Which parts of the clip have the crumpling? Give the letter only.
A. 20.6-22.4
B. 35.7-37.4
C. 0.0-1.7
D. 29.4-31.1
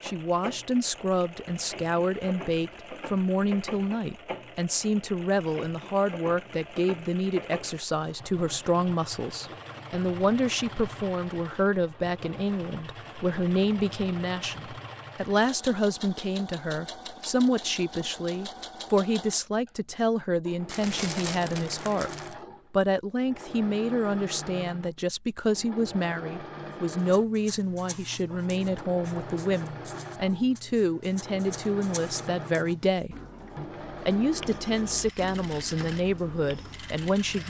A.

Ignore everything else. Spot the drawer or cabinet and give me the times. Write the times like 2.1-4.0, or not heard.
not heard.